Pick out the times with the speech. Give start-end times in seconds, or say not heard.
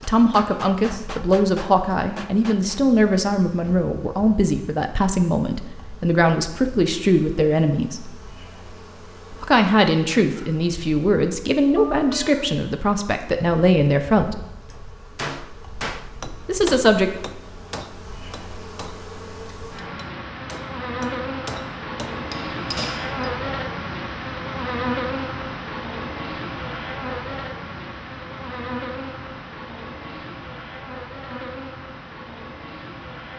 0.0-8.2, 9.3-14.3, 16.4-17.1.